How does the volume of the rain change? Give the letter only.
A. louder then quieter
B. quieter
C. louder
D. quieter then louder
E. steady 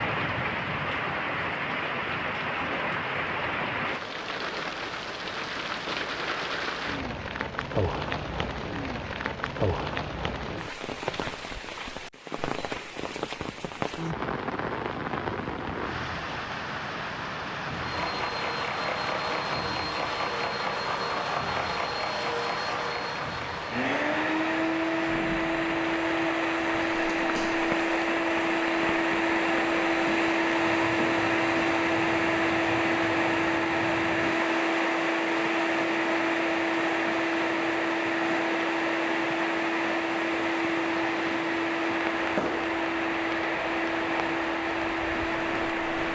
B.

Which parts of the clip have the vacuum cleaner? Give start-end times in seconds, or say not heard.
17.7-46.0.